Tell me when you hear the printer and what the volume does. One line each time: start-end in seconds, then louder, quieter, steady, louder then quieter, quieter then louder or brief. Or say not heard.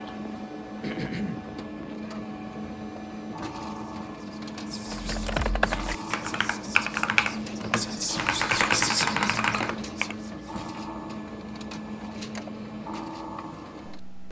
0.0-14.2 steady.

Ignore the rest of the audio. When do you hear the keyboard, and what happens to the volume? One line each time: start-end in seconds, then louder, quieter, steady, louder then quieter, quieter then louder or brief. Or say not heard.
4.9-10.2 steady.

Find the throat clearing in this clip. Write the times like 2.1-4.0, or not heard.
0.8-1.4, 8.8-9.4.